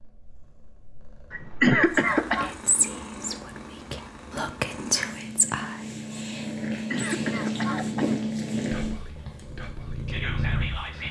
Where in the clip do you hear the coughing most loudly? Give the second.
2 s.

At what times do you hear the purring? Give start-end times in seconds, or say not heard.
0.0-11.0.